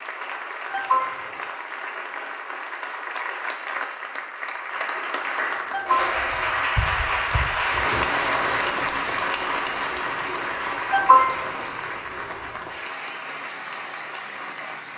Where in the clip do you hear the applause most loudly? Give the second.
8 s.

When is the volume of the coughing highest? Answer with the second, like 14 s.
11 s.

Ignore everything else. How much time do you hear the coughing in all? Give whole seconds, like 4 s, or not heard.
2 s.